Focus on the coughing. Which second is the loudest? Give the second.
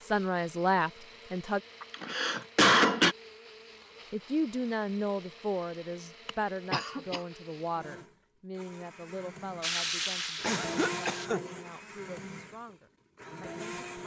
3 s.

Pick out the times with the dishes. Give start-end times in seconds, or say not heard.
not heard.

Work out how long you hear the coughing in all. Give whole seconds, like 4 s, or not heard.
3 s.